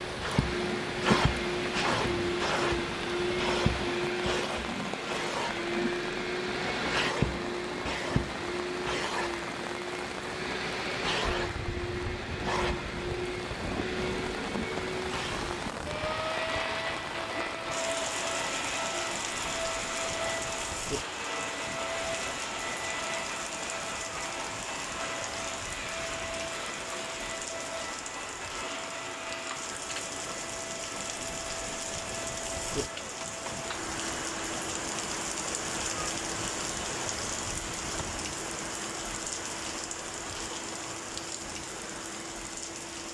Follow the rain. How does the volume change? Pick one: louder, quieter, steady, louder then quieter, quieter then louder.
steady.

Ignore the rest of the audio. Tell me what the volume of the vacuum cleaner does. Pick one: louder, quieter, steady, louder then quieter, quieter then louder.
quieter.